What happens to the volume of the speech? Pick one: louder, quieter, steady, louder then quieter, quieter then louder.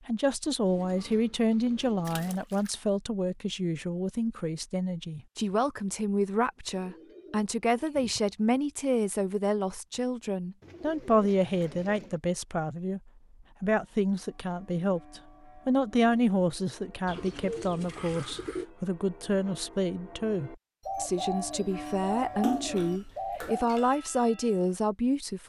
steady.